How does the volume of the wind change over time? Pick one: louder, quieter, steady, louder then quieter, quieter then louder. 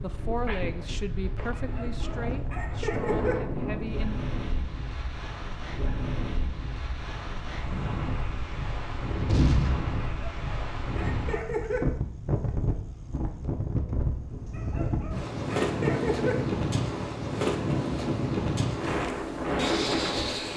louder.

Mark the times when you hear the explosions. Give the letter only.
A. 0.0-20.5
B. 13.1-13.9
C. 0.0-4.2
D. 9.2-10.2
D.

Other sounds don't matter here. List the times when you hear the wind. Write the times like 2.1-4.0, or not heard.
0.0-20.5.